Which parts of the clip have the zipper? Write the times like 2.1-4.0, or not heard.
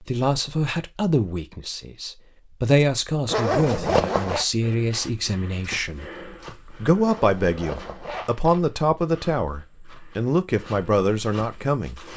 3.2-4.5, 7.0-8.7.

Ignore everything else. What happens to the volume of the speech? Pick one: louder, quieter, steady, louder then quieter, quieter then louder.
steady.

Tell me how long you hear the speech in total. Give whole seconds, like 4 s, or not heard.
11 s.